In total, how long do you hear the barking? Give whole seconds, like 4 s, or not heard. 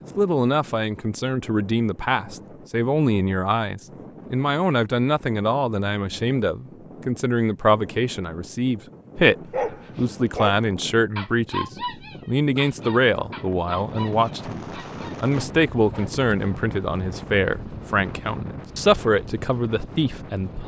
7 s.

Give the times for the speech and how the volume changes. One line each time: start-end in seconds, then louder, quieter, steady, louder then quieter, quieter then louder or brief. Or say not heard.
0.1-20.6 steady.